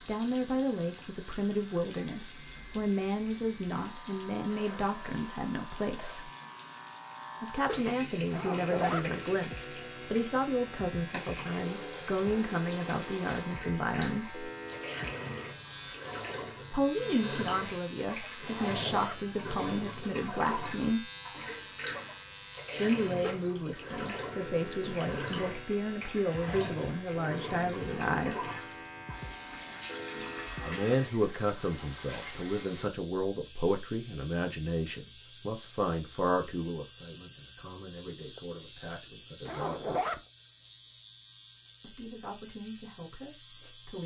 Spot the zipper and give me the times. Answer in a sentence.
The zipper can be heard from 8.3 to 9.1 s, from 18.4 to 19.2 s and from 39.5 to 40.2 s.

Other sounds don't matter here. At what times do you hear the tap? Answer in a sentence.
The tap can be heard from 0.0 to 32.9 s.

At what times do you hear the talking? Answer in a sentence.
You can hear the talking from 0.1 to 6.3 s, from 7.4 to 14.5 s, from 16.7 to 21.1 s, from 22.8 to 28.4 s, from 30.6 to 40.0 s and from 41.8 to 44.0 s.